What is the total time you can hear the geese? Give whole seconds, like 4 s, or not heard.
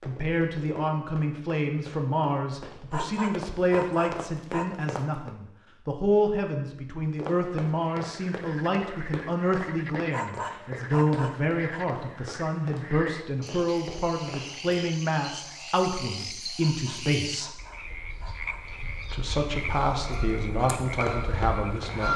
4 s.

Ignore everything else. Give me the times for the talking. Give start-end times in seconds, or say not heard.
0.0-17.6, 19.1-22.1.